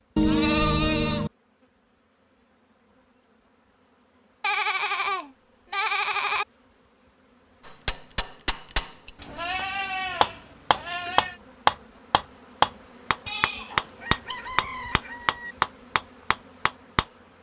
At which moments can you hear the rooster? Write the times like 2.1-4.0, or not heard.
13.9-15.6.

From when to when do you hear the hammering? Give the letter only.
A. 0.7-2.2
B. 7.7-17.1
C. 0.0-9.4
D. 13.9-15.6
B.